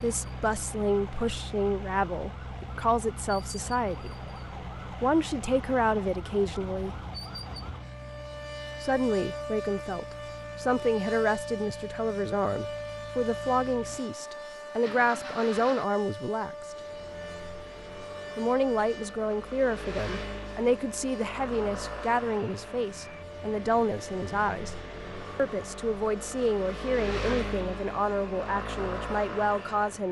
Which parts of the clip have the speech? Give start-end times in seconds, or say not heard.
0.0-4.2, 4.9-7.0, 8.8-16.6, 18.4-24.8, 25.4-30.0.